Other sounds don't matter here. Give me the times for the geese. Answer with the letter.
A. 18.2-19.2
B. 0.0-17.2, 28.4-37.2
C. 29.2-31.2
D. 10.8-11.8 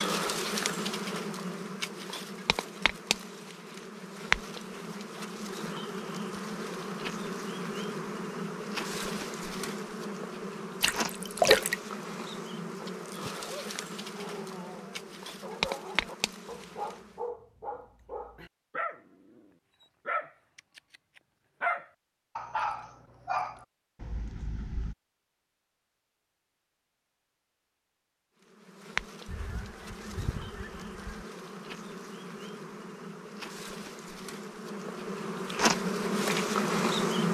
C.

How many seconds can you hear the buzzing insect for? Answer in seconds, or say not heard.
26 s.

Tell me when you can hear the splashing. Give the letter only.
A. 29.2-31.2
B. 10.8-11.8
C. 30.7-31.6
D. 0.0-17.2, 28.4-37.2
B.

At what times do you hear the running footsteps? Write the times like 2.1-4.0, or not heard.
not heard.